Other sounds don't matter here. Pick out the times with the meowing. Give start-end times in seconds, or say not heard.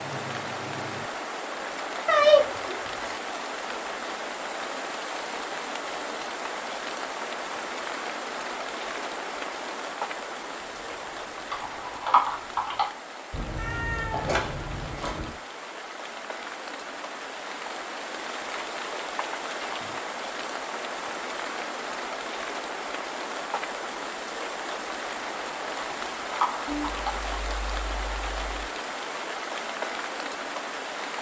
2.0-2.7, 13.3-15.3, 26.6-28.7.